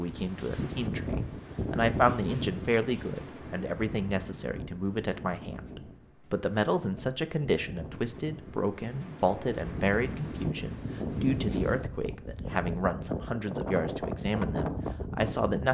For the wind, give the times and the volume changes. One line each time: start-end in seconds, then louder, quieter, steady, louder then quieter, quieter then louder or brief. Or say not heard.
0.0-15.7 quieter then louder.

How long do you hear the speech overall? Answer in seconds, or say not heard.
16 s.